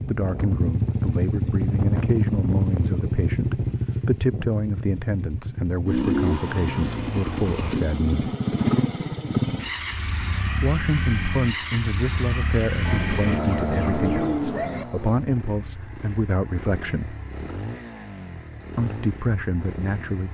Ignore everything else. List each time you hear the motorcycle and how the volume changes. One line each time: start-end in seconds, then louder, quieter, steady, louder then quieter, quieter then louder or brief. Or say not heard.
0.0-20.2 quieter.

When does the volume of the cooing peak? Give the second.
14 s.